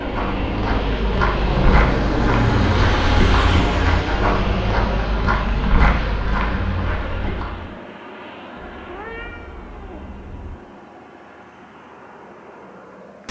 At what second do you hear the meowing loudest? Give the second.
9 s.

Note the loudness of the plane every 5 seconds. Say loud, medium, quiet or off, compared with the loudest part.
loud, medium, quiet.